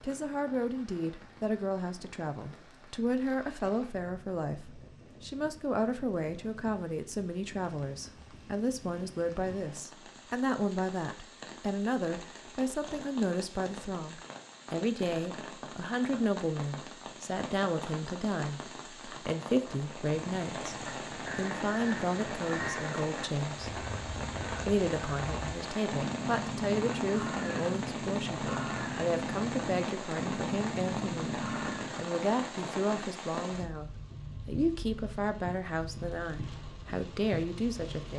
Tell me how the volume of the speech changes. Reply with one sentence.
The volume of the speech stays about the same.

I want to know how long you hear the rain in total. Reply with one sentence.
You can hear the rain for 38 seconds altogether.